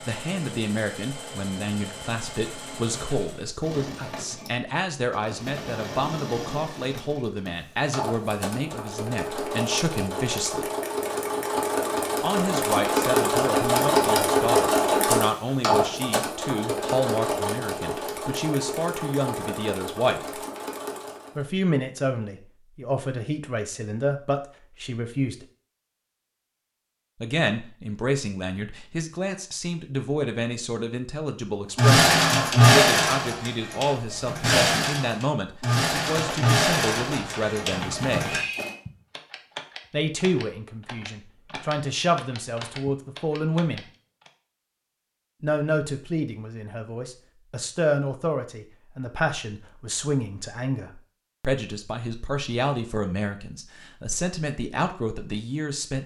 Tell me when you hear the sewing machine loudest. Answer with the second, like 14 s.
32 s.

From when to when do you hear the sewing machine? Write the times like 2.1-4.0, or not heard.
0.0-21.4, 31.8-38.8.